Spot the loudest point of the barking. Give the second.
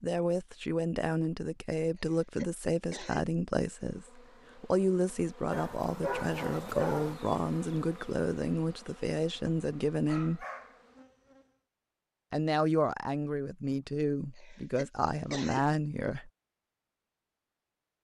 7 s.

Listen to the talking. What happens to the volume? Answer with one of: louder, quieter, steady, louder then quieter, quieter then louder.
steady.